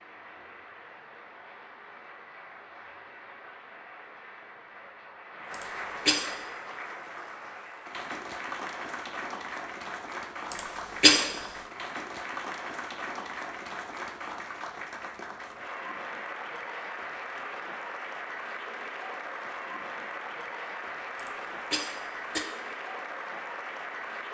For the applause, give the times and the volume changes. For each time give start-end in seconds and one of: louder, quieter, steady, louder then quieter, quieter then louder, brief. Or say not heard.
0.0-24.2 louder.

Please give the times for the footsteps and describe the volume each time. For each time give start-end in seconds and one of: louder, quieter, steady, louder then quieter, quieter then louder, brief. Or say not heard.
not heard.